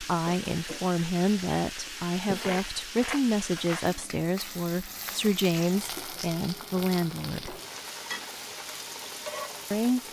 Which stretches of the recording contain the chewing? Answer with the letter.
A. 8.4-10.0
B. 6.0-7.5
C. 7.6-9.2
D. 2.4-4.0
D.